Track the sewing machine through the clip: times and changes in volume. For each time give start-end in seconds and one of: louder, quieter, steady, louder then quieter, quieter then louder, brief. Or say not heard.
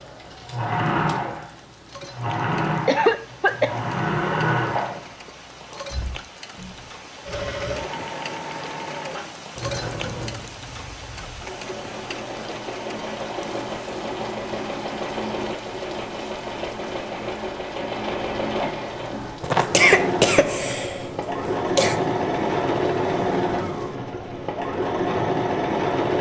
0.0-26.1 quieter then louder.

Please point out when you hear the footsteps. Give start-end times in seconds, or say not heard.
not heard.